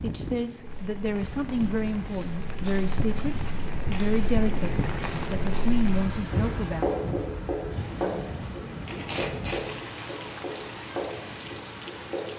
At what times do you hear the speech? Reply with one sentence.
The speech can be heard from 0.0 to 6.8 s.